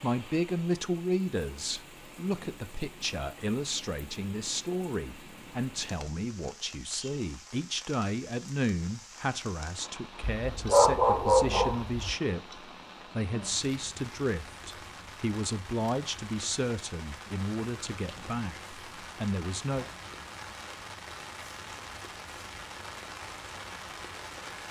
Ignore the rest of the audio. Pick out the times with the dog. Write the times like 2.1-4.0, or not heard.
10.4-12.2.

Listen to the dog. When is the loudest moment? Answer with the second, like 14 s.
11 s.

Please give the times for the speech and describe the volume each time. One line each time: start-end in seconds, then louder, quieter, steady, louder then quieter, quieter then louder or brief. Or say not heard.
0.0-19.9 steady.